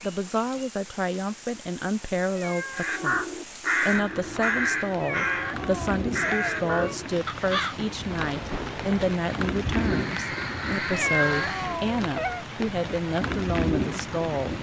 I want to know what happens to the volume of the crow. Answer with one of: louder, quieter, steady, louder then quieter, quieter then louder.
quieter.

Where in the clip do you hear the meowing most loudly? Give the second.
11 s.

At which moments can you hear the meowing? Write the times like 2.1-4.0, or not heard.
2.4-3.0, 5.0-7.0, 10.9-12.4.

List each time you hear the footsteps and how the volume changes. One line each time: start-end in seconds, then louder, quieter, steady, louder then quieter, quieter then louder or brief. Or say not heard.
not heard.